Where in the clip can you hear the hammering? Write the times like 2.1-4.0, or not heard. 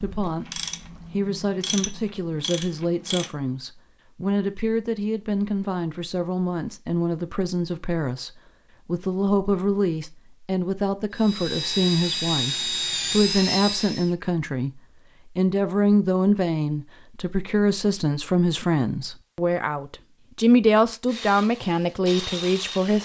not heard.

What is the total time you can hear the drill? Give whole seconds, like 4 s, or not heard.
3 s.